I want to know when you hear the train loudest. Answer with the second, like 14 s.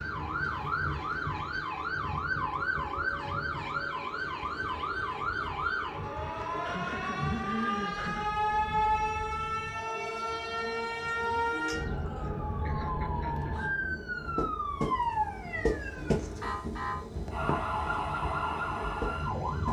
16 s.